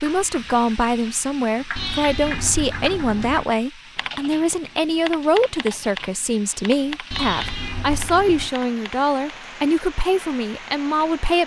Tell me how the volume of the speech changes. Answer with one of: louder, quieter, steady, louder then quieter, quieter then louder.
steady.